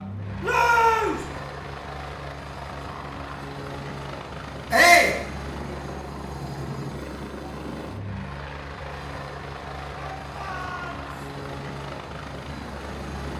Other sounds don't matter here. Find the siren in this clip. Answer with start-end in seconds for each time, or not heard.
not heard.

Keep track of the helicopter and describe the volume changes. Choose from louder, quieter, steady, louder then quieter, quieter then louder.
steady.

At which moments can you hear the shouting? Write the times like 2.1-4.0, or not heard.
0.4-1.2, 4.7-5.2, 9.9-11.1.